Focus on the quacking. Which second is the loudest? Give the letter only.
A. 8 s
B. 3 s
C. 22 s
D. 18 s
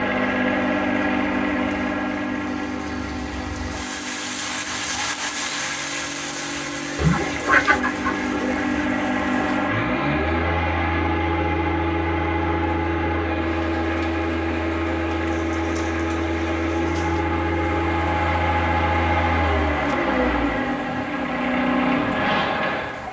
A.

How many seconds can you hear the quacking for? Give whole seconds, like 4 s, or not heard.
3 s.